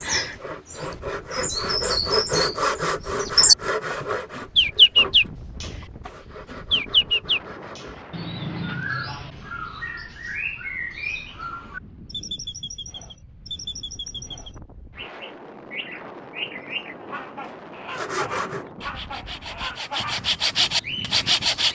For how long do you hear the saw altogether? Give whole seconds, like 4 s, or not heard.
12 s.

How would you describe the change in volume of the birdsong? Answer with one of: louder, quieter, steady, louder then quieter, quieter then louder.
quieter.